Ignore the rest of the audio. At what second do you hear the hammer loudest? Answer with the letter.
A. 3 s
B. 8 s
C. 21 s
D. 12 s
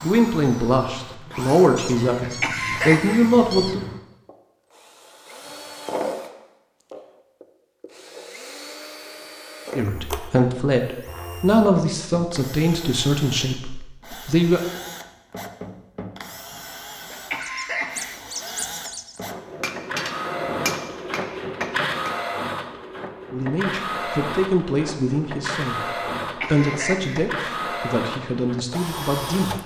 C.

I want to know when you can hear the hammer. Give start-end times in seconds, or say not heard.
19.4-22.1.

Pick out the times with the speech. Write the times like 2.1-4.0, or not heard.
0.0-3.8, 9.8-14.6, 23.3-29.6.